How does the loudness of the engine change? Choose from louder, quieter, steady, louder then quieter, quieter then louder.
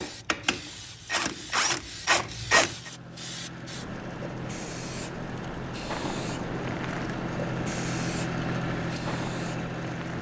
louder.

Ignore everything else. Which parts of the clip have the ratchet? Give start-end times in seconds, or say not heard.
0.0-2.8.